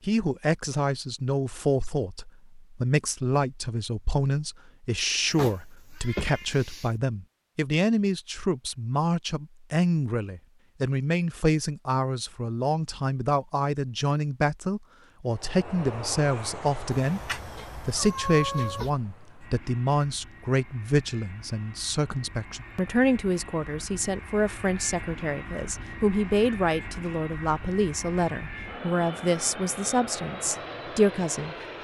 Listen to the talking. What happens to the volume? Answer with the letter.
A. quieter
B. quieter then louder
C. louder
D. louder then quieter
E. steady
E.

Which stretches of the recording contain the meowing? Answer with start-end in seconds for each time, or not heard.
5.3-6.9, 16.9-18.9.